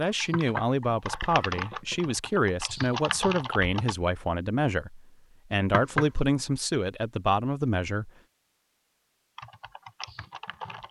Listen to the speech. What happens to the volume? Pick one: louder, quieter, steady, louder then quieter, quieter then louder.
steady.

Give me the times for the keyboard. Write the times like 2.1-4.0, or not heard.
0.0-4.0, 9.3-10.8.